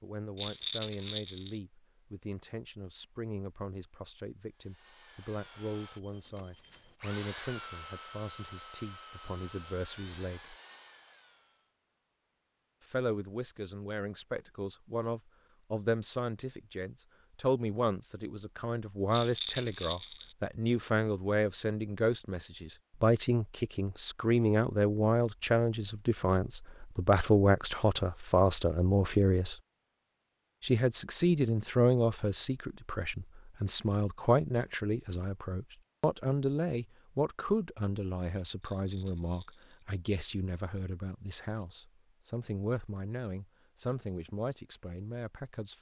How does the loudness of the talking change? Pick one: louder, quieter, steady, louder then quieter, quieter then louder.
louder then quieter.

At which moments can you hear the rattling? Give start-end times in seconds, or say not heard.
0.3-1.6, 19.1-20.3, 38.6-39.8.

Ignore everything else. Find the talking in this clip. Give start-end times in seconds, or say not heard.
0.0-10.6, 12.8-29.6, 30.6-45.7.